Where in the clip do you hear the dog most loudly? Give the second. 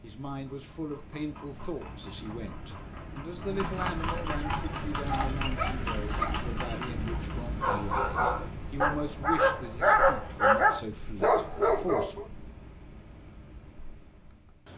10 s.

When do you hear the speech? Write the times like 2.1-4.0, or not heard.
0.0-12.2.